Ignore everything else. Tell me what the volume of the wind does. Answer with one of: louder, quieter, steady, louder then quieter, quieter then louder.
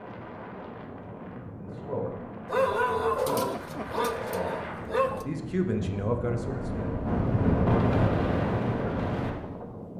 louder.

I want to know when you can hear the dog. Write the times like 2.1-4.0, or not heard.
2.5-5.2.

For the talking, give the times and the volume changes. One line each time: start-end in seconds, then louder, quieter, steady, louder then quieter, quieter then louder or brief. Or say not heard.
1.5-7.0 quieter then louder.